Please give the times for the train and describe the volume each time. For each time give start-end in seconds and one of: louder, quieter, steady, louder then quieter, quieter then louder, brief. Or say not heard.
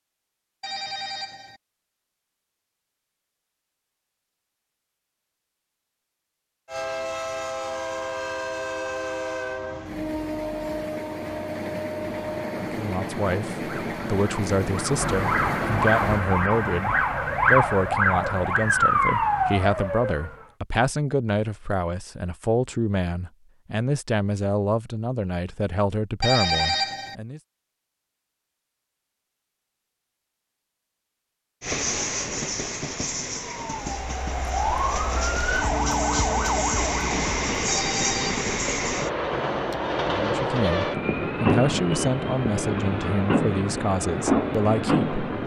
6.7-16.2 steady
31.6-45.4 louder.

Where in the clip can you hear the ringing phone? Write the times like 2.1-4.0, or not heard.
0.6-1.6, 26.2-27.1, 37.6-38.4.